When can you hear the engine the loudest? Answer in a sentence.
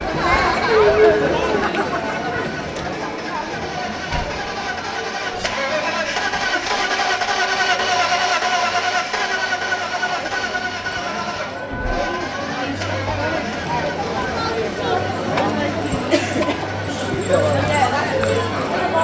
The volume of the engine peaks at 8 seconds.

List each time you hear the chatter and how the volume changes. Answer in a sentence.
The chatter can be heard from 0.0 to 18.9 s, getting quieter then louder.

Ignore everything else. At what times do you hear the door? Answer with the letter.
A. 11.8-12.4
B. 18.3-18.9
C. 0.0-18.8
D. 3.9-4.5
D.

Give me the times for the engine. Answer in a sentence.
You can hear the engine from 0.0 to 18.8 s.